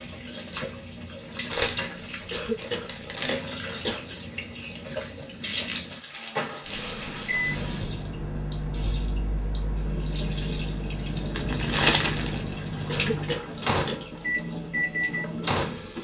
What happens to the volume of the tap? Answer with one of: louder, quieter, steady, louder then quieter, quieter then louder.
steady.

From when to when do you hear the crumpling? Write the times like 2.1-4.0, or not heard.
1.5-3.4, 5.4-6.9, 11.3-12.4.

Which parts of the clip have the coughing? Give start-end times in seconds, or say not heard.
2.3-4.0, 12.8-14.1.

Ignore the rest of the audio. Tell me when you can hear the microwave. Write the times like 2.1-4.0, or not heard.
6.7-16.0.